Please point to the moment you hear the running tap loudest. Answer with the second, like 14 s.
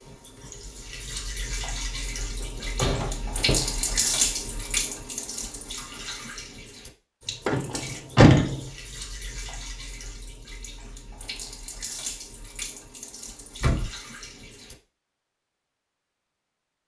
4 s.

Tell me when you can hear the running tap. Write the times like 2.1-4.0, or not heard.
0.0-14.8.